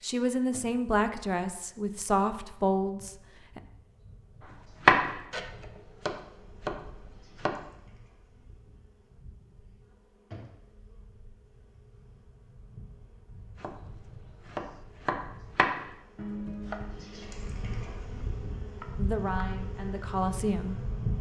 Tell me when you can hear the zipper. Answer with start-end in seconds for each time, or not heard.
not heard.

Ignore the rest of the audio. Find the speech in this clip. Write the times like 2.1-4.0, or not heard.
0.0-3.6, 18.9-20.8.